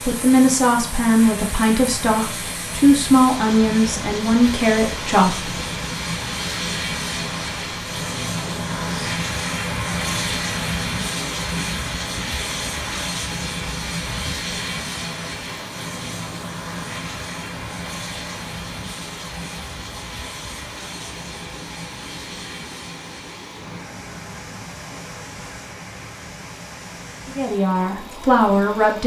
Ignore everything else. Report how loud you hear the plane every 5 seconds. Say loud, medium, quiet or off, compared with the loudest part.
medium, loud, loud, medium, medium, quiet.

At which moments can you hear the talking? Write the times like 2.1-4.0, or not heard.
0.0-5.5, 27.2-29.0.